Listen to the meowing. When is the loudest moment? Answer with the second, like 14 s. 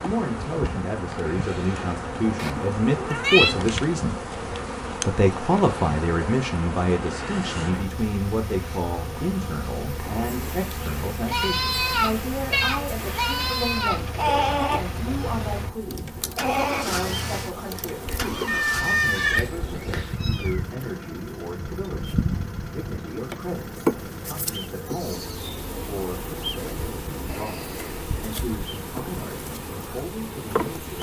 3 s.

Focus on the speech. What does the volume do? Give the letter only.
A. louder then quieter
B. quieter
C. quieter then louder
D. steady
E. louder
B.